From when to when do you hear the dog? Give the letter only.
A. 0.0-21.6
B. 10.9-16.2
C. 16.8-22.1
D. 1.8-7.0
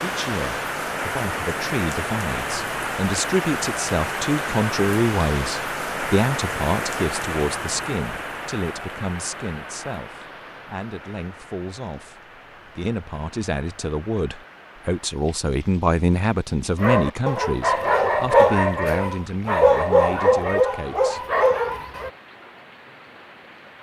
C.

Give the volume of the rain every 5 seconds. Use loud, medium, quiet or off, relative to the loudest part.
loud, loud, quiet, quiet, quiet.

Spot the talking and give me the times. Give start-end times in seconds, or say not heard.
0.0-21.6.